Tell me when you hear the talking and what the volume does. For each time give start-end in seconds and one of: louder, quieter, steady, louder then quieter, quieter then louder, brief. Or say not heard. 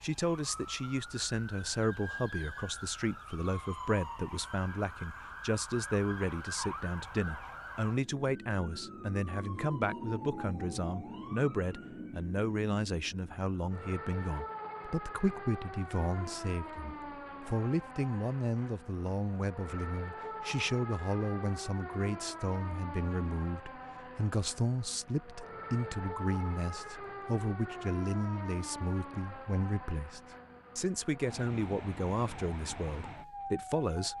0.0-34.1 steady.